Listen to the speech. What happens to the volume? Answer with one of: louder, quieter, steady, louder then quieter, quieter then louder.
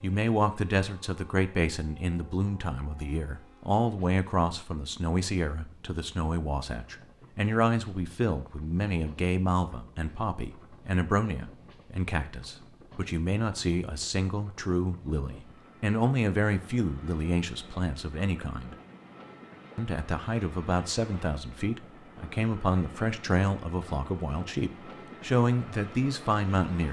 steady.